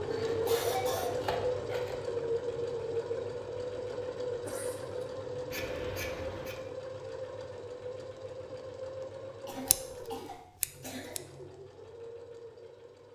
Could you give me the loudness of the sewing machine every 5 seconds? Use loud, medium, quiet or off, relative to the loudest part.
loud, medium, quiet.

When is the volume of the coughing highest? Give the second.
1 s.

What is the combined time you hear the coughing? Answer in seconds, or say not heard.
3 s.